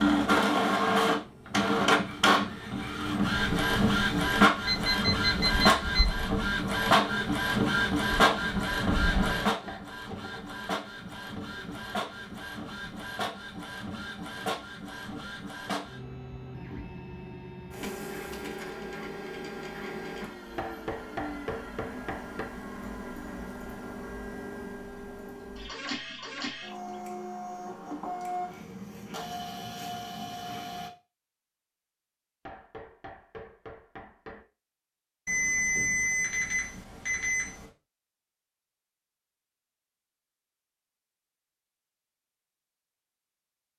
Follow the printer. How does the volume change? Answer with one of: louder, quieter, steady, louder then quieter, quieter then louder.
quieter.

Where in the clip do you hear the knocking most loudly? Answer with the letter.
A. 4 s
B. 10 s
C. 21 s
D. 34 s
C.